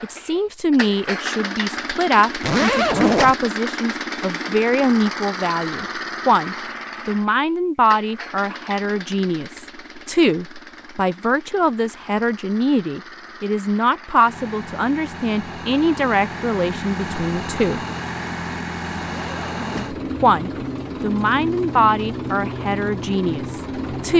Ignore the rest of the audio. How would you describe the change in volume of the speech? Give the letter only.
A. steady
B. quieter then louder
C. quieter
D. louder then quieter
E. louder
A.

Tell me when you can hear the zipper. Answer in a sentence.
The zipper can be heard from 2.4 to 3.4 s and from 19.0 to 19.9 s.